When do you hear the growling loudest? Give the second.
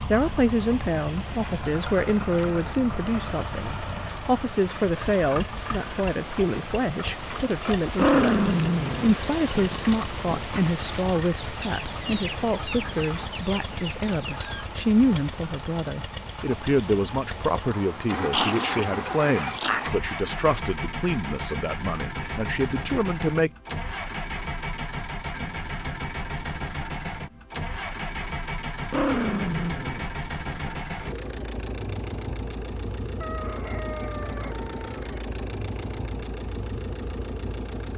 8 s.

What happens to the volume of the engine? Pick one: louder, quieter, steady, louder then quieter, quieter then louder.
steady.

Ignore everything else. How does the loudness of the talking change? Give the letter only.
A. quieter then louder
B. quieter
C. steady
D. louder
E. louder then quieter
C.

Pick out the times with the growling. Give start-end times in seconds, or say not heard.
7.8-10.4, 18.3-19.9, 28.8-30.8.